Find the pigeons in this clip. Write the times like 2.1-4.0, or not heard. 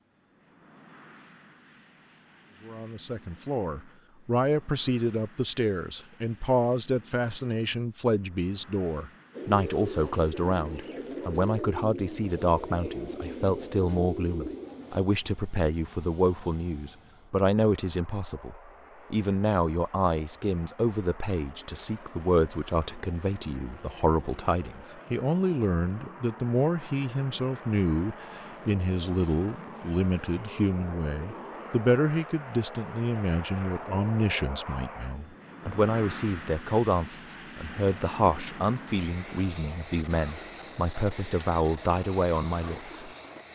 9.3-15.0, 37.8-43.5.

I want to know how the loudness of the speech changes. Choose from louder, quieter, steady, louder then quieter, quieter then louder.
steady.